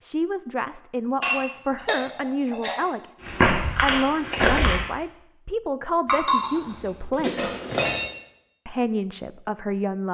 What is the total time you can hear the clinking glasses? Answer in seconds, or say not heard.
4 s.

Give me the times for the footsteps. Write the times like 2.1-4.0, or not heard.
3.2-4.8.